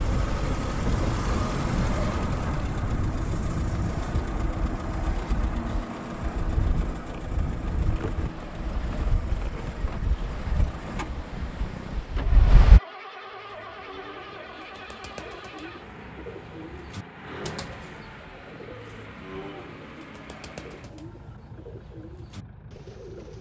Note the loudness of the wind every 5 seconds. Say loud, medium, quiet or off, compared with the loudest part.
loud, medium, loud, off, off.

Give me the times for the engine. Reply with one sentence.
The engine can be heard from 0.0 to 23.3 s.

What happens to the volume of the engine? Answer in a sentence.
The loudness of the engine goes down.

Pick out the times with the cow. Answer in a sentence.
The cow can't be heard in this clip.